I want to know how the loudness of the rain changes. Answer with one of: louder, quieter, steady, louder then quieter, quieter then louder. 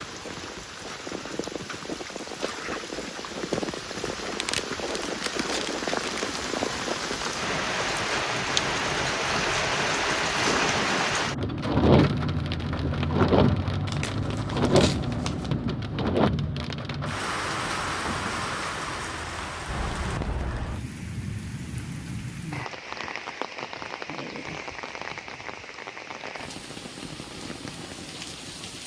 louder then quieter.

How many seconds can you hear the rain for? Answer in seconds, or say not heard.
29 s.